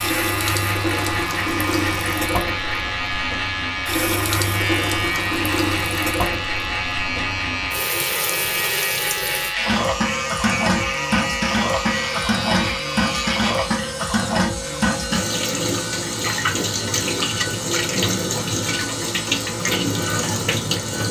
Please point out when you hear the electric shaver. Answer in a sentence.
You can hear the electric shaver from 0.0 to 21.0 s.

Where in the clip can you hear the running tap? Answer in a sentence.
The running tap can be heard from 0.0 to 21.0 s.